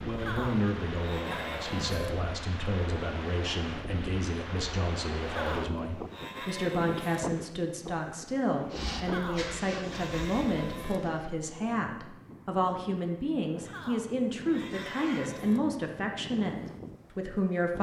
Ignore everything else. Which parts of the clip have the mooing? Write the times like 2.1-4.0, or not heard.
0.1-2.1, 5.2-7.2, 8.9-11.0, 13.6-15.6.